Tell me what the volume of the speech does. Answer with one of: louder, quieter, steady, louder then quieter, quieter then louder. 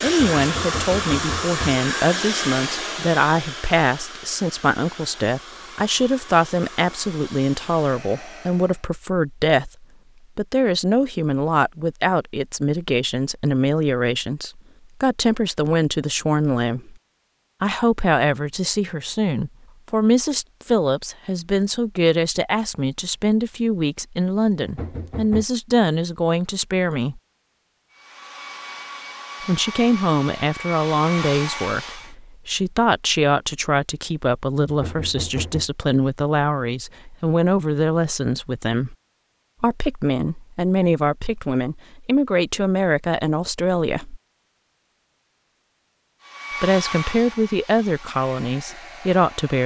steady.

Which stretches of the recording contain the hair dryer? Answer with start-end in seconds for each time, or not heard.
0.0-8.8, 27.9-32.1, 46.2-49.6.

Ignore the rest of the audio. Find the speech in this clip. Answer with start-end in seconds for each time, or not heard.
0.0-16.9, 17.6-27.2, 29.4-39.0, 39.6-44.2, 46.6-49.6.